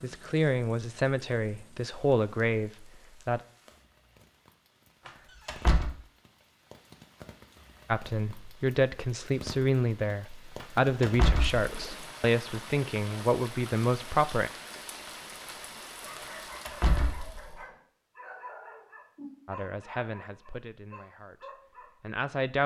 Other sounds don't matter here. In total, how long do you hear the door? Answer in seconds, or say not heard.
3 s.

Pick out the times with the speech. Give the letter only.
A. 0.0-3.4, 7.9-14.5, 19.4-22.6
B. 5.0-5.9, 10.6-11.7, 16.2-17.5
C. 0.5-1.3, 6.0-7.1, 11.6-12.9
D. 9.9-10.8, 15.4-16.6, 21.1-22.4
A.